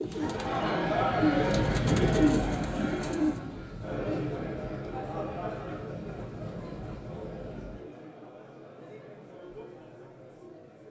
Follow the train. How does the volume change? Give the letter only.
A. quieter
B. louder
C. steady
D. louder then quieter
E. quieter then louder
A.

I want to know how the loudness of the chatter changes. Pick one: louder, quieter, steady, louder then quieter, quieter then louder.
quieter.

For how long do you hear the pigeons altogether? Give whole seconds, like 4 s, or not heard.
3 s.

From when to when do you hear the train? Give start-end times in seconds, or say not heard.
0.0-7.8.